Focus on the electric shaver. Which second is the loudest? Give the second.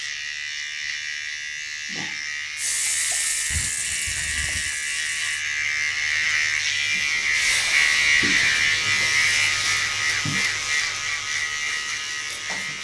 8 s.